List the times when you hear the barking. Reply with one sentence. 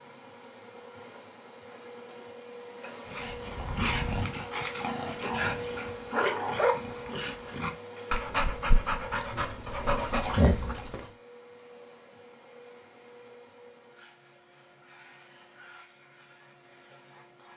You can hear the barking from 3.0 to 11.1 s.